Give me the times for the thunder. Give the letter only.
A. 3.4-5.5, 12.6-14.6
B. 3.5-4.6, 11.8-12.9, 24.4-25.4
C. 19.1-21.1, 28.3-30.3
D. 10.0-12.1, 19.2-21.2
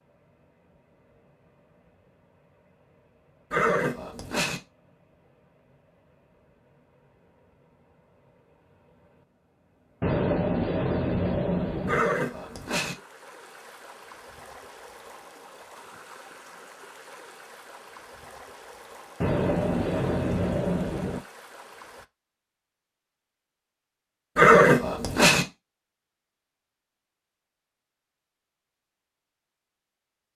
D.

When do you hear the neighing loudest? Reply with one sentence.
The volume of the neighing peaks at 25 seconds.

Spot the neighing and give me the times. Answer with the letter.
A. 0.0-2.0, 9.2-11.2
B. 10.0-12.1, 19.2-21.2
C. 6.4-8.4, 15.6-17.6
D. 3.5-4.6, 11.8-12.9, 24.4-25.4
D.